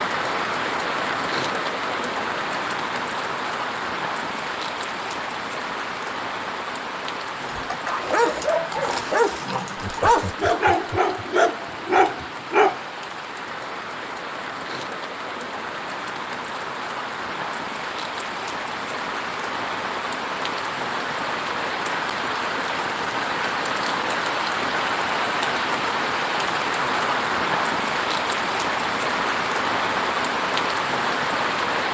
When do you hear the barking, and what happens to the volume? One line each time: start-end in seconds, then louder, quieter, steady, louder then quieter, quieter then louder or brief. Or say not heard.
7.4-12.8 steady.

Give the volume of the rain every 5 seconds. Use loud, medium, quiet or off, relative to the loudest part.
loud, medium, medium, medium, loud, loud, loud.